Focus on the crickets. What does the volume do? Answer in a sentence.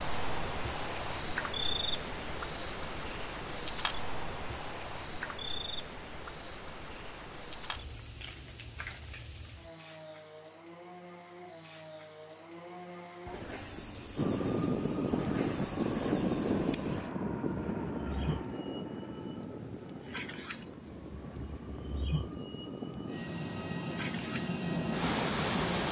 The loudness of the crickets goes down, then up.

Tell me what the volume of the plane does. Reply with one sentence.
The loudness of the plane goes down, then up.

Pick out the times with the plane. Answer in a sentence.
The plane can be heard from 14.2 to 25.8 s.